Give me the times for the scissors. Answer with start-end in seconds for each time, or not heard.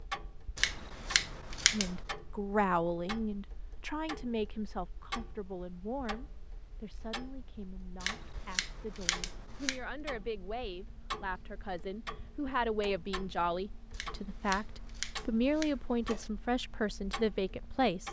0.6-1.9, 8.0-9.8, 13.9-16.3.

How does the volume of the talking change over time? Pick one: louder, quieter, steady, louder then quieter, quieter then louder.
quieter then louder.